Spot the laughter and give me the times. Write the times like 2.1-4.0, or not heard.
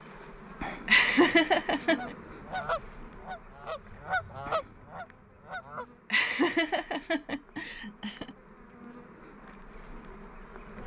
0.8-2.1, 6.1-8.3.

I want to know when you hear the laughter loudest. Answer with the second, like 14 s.
1 s.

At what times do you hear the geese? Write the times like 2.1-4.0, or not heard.
1.9-5.8.